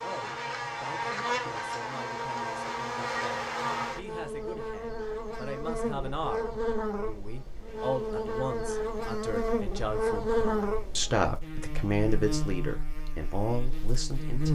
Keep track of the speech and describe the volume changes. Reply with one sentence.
The loudness of the speech goes up.